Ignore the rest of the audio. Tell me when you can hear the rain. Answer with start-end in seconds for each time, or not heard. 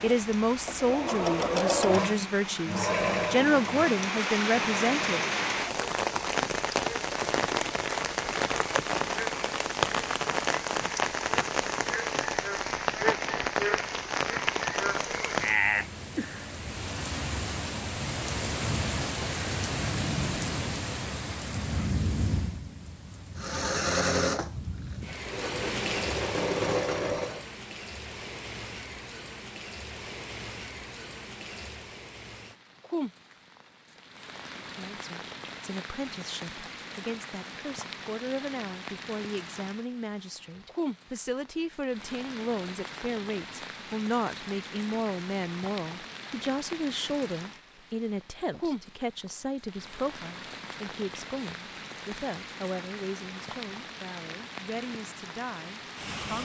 0.0-56.3.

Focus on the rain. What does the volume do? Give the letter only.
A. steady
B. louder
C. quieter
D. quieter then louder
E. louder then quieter
C.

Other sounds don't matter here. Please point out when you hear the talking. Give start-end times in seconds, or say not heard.
0.0-5.2, 34.6-56.3.